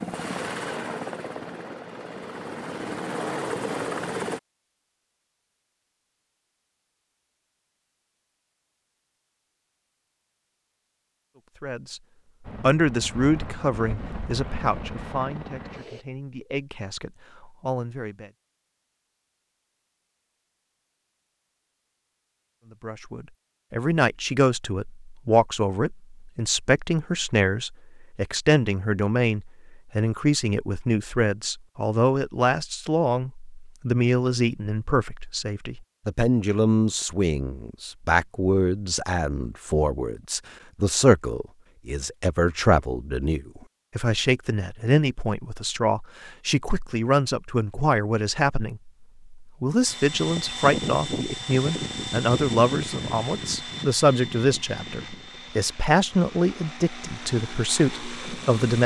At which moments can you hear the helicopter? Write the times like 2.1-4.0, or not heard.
0.0-4.4, 12.4-16.1, 49.9-58.8.